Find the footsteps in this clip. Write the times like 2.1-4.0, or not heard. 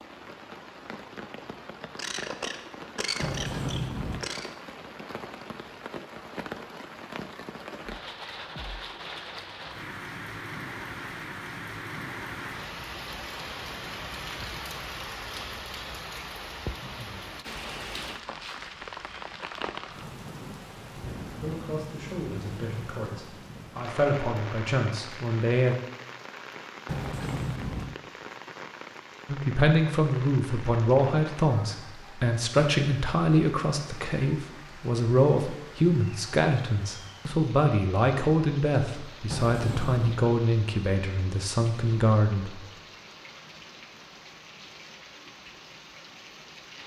not heard.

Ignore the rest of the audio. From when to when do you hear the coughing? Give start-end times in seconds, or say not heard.
1.9-4.5.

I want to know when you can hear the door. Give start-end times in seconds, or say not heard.
3.2-4.2, 26.9-27.9, 39.3-40.3.